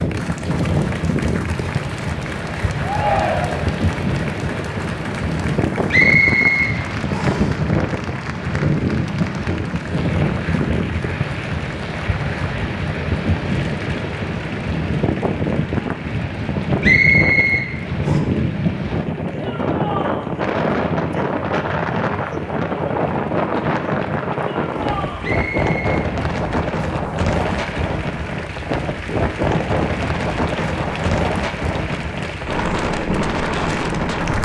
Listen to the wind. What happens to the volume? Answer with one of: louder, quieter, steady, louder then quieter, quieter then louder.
steady.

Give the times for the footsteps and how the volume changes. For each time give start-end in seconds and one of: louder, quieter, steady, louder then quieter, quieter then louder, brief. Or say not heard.
not heard.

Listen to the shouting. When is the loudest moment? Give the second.
3 s.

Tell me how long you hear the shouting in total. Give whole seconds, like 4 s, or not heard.
3 s.